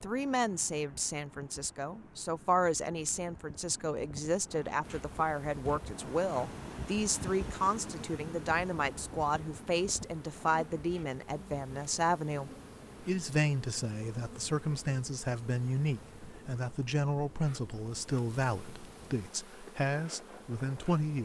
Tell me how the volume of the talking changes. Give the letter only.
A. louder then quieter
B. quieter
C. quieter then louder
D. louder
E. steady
E.